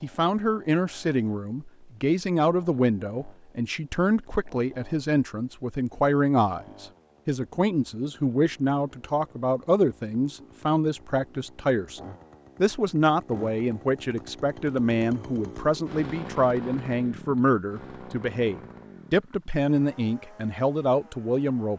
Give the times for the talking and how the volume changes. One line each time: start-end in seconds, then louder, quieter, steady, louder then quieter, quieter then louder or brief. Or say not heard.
0.0-21.7 steady.